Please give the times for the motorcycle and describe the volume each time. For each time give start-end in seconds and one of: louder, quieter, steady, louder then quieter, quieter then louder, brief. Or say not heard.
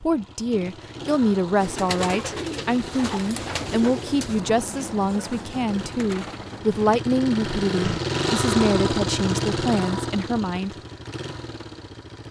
0.0-12.2 louder then quieter.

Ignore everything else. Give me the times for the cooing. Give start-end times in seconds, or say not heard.
1.6-7.0.